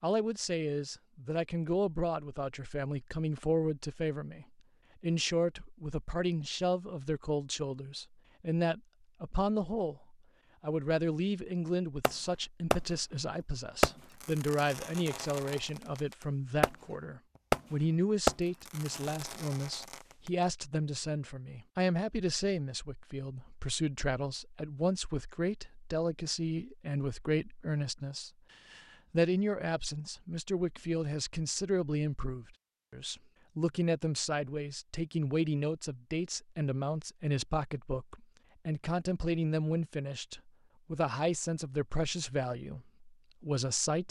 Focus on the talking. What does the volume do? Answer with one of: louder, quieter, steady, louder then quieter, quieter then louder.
steady.